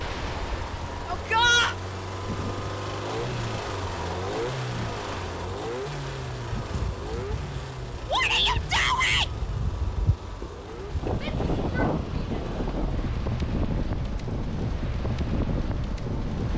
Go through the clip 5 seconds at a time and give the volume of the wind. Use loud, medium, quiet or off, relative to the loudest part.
medium, medium, loud, loud.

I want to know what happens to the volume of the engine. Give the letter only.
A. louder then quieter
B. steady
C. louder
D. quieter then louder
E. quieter
E.